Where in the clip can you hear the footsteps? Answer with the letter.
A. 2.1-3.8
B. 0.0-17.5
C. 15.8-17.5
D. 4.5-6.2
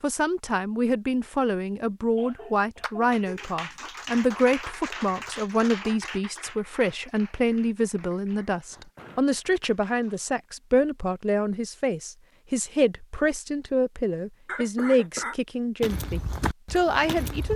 C.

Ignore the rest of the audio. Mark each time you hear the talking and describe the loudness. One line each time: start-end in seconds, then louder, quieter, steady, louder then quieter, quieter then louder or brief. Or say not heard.
0.0-17.5 steady.